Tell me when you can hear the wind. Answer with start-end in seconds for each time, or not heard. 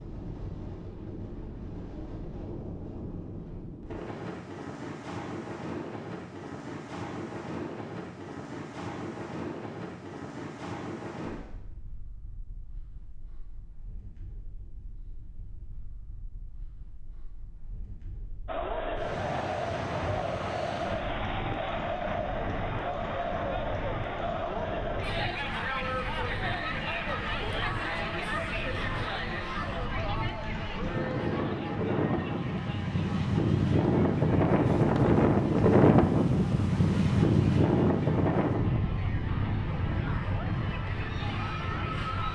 0.0-42.2.